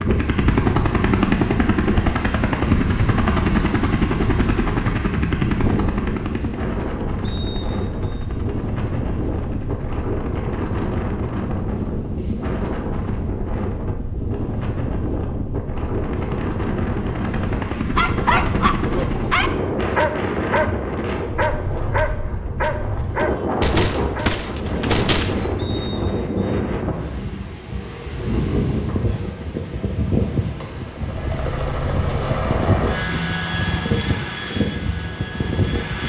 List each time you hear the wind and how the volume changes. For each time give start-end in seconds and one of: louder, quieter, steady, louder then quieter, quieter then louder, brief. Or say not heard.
0.0-36.0 steady.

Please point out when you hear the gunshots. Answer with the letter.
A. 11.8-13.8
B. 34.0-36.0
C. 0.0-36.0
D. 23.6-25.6
D.